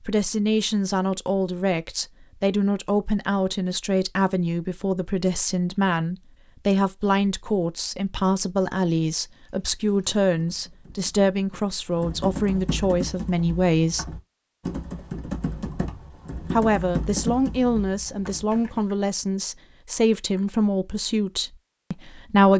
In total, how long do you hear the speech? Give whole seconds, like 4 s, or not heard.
20 s.